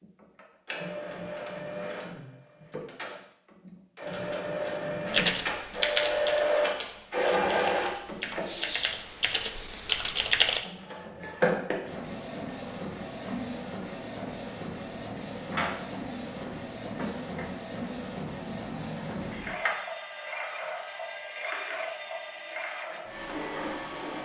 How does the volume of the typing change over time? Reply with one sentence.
The loudness of the typing goes down, then up.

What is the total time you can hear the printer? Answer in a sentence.
The printer can be heard for 22 seconds in total.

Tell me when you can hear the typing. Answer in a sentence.
You can hear the typing from 5.0 to 10.7 s.